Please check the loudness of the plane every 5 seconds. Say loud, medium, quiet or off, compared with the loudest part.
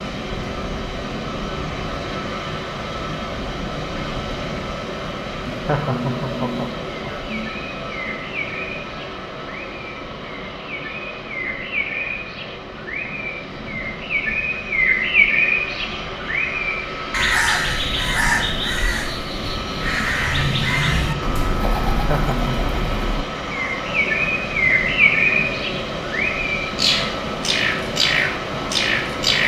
loud, loud, medium, loud, loud, loud.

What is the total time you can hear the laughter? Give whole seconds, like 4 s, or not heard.
3 s.